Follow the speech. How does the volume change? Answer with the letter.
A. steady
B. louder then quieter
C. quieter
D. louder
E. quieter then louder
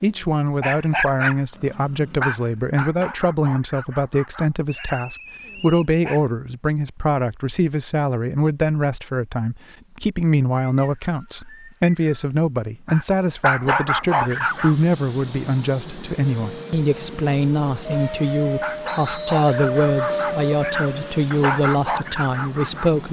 A.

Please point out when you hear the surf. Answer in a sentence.
The surf can't be heard in this clip.